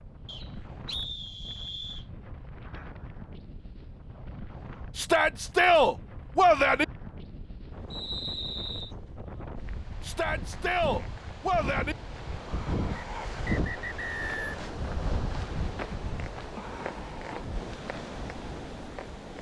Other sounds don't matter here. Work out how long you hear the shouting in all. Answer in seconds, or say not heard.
4 s.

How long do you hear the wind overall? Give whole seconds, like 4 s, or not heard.
19 s.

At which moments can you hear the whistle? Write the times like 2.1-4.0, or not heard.
0.2-2.0, 7.9-8.9, 12.9-14.4.